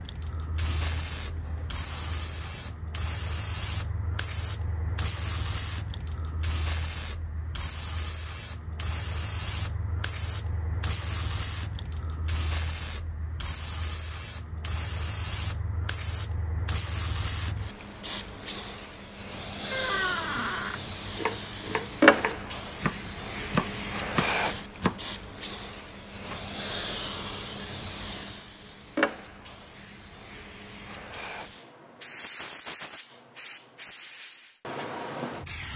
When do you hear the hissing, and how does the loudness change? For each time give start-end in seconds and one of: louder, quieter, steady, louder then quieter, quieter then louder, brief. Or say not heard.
0.0-35.7 louder then quieter.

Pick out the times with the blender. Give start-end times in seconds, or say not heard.
not heard.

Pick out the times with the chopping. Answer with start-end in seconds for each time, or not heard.
21.0-25.1.